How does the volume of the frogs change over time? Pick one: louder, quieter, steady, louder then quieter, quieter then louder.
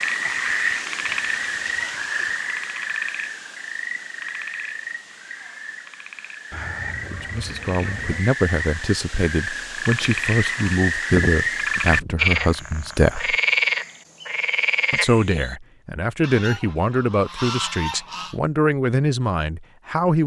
quieter then louder.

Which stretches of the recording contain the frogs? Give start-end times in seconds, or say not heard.
0.0-15.6.